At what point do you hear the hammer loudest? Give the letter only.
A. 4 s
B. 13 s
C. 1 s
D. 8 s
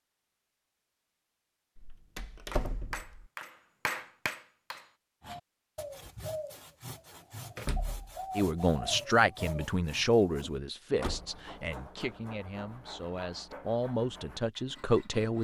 A.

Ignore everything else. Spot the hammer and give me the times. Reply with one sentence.
You can hear the hammer from 2.5 to 4.9 s.